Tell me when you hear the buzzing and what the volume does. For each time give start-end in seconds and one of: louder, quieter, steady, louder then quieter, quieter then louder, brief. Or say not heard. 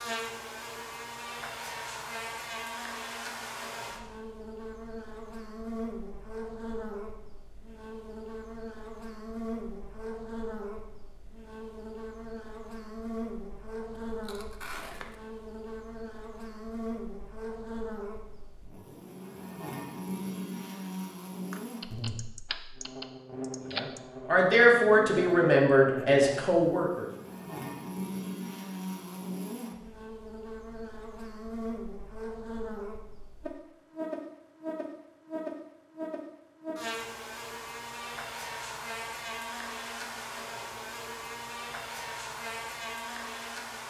0.0-43.8 steady.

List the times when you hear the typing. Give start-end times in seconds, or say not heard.
21.5-24.0.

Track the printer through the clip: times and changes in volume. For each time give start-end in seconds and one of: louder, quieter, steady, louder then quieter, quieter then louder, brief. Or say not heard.
not heard.